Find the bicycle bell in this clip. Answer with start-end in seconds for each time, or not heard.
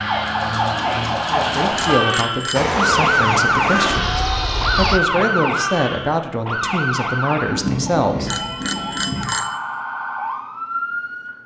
1.8-2.7, 8.2-9.6.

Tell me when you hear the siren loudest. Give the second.
3 s.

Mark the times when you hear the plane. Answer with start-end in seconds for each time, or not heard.
2.5-5.0.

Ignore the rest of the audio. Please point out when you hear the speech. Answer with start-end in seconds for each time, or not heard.
1.3-8.3.